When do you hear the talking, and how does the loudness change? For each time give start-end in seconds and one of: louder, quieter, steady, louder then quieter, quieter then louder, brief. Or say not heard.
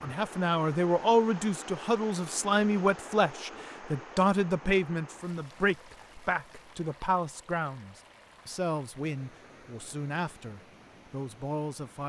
0.0-12.0 quieter.